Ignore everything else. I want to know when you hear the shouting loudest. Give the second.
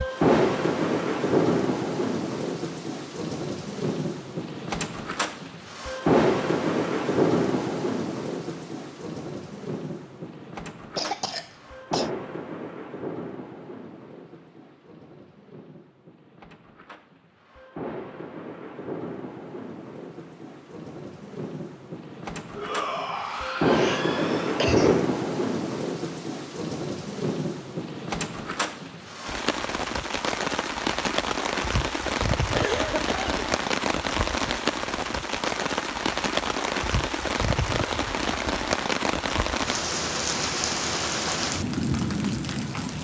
23 s.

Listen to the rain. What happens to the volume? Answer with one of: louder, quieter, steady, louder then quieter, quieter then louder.
quieter then louder.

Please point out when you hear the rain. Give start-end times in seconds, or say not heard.
0.0-43.0.